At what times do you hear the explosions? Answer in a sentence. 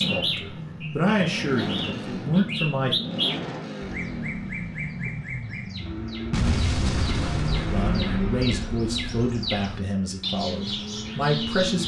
The explosions can be heard from 6.3 to 9.2 s.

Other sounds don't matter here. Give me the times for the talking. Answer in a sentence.
The talking can be heard from 0.0 to 3.0 s and from 7.7 to 11.8 s.